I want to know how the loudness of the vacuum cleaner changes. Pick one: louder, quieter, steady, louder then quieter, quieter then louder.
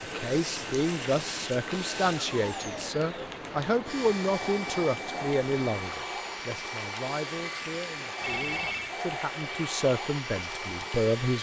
steady.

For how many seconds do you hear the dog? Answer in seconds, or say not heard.
not heard.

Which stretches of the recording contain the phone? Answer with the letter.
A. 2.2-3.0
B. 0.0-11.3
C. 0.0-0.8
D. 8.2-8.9
D.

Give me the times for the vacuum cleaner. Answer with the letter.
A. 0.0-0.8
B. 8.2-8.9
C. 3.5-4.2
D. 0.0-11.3
D.